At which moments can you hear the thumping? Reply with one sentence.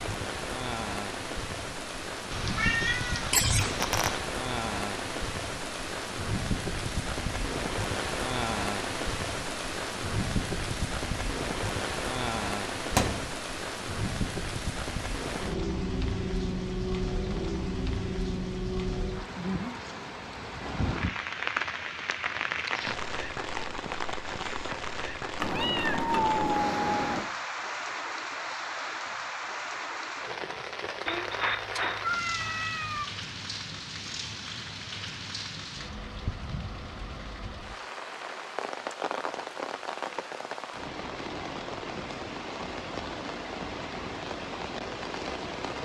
You can hear the thumping from 12.9 to 13.3 s.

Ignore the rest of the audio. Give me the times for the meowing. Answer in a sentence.
The meowing can be heard from 2.3 to 4.2 s, from 25.4 to 27.3 s and from 31.1 to 33.0 s.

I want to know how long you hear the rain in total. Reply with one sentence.
You can hear the rain for 46 seconds altogether.